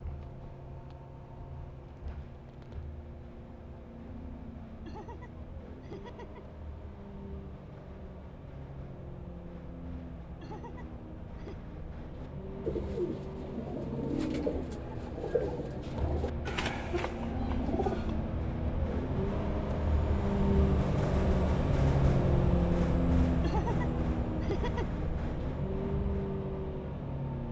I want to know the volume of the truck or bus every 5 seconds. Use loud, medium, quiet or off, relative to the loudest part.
quiet, quiet, quiet, medium, loud, medium.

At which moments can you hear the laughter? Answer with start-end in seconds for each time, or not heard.
4.8-6.5, 10.4-11.7, 23.4-24.9.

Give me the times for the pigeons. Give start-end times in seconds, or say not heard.
12.2-18.4.